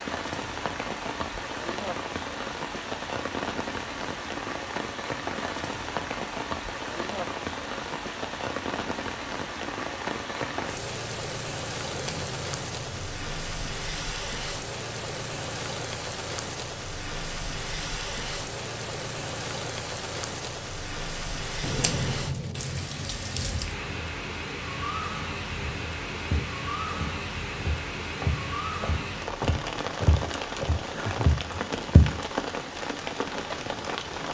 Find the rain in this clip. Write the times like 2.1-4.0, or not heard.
0.0-34.2.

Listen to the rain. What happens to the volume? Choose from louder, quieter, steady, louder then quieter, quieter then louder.
steady.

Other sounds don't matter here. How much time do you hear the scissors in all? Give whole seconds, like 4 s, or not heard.
4 s.